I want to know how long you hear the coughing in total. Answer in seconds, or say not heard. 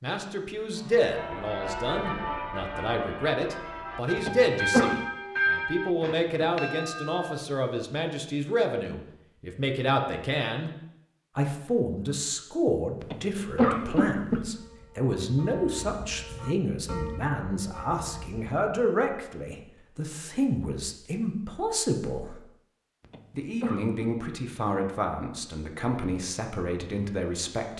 3 s.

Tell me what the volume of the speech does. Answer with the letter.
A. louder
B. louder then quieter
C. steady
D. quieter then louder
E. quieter
C.